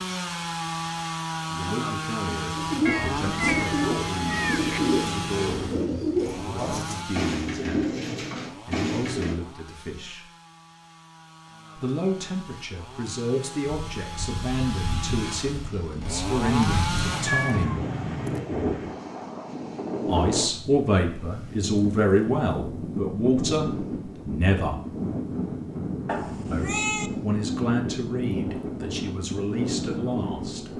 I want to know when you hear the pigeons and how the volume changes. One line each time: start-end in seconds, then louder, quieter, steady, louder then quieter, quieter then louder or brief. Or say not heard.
2.5-9.3 steady.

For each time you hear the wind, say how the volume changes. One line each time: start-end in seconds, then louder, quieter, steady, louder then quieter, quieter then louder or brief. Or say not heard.
13.7-30.7 louder.